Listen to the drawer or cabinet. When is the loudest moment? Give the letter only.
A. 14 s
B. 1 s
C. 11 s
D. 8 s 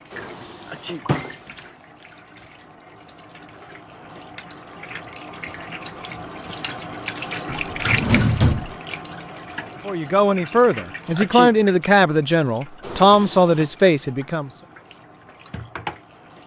D.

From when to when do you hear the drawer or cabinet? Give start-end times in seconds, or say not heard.
0.1-1.4, 7.5-8.8, 12.8-13.8.